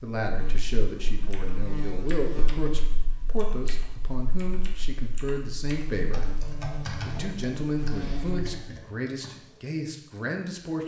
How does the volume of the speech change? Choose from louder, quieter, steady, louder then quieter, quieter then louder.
steady.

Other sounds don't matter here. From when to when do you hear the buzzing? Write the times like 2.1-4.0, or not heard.
0.2-8.6.